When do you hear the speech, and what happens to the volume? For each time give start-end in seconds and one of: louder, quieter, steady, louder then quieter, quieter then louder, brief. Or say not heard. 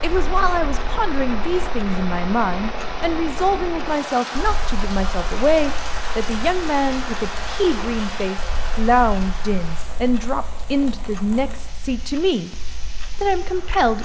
0.0-12.5 steady
13.1-13.9 brief.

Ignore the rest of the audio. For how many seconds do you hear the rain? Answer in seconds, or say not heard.
14 s.